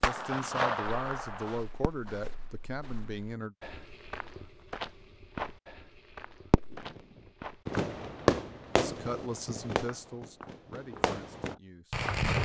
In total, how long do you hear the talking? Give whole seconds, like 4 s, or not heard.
7 s.